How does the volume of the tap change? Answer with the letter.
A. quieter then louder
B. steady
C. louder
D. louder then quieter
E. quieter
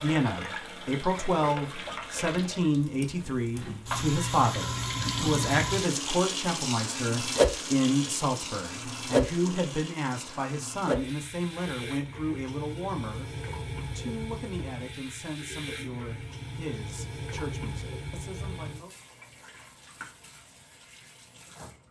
D.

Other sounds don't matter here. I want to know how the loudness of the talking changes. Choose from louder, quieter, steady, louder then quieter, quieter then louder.
quieter.